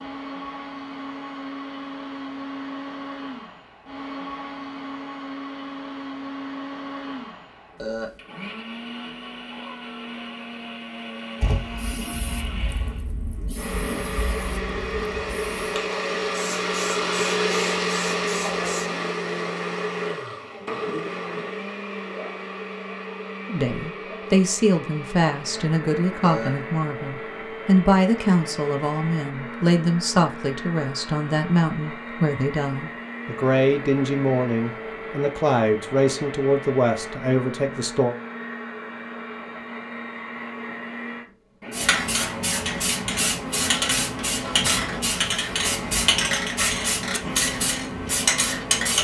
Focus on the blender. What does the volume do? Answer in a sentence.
The volume of the blender goes up, then down.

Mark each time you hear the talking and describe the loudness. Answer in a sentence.
You can hear the talking from 23.4 to 38.1 s, at a steady volume.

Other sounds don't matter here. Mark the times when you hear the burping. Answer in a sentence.
You can hear the burping from 7.8 to 8.2 s and from 26.2 to 26.6 s.